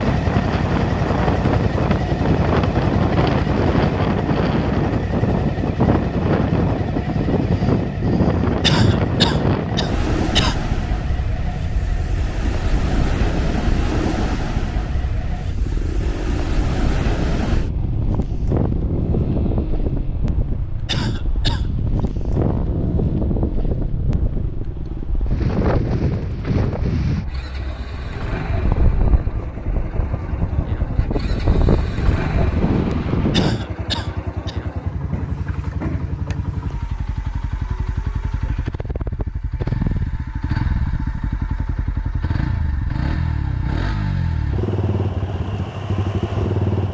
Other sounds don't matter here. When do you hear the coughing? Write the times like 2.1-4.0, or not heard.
8.6-10.6, 20.9-21.7, 33.3-34.5.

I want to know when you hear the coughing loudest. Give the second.
9 s.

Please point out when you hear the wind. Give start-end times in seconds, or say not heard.
0.0-33.5.